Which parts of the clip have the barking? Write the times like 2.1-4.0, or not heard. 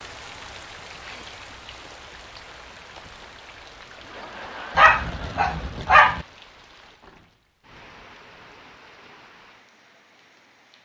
4.8-6.2.